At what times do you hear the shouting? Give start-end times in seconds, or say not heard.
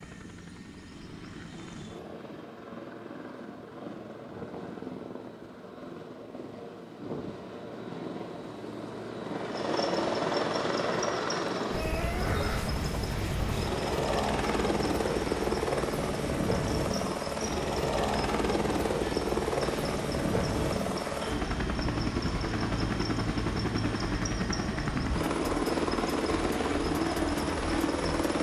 not heard.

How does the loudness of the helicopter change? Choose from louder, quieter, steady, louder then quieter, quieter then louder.
louder.